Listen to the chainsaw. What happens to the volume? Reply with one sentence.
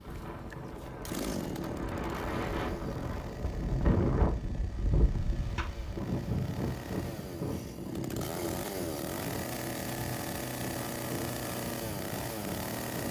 The volume of the chainsaw goes down, then up.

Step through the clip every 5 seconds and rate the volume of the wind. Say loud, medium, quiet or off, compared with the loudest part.
loud, loud, medium.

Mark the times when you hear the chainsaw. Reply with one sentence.
The chainsaw can be heard from 0.0 to 13.0 s.